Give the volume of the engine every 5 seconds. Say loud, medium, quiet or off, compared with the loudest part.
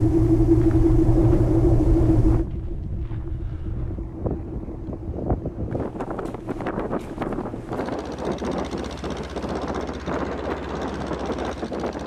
loud, quiet, quiet.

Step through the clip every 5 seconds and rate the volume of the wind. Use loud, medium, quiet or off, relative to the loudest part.
medium, loud, loud.